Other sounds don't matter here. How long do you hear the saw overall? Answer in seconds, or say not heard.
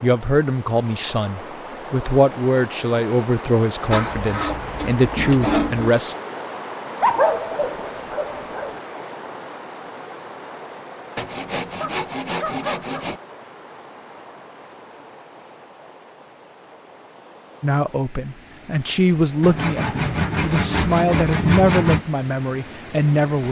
7 s.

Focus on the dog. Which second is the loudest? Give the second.
7 s.